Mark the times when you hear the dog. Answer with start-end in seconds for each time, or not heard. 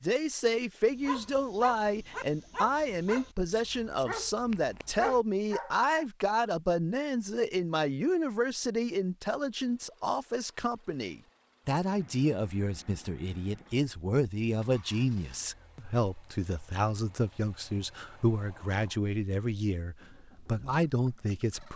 0.9-6.0.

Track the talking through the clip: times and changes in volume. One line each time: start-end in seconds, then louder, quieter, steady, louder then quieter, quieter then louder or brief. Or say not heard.
0.0-21.7 steady.